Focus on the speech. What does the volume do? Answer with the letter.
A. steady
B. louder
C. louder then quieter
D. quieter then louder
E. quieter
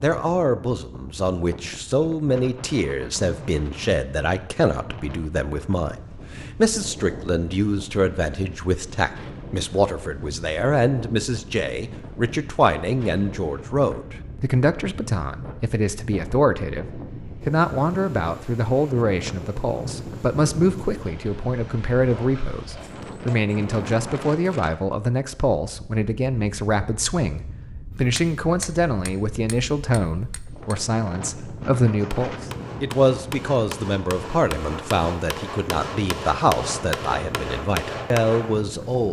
A.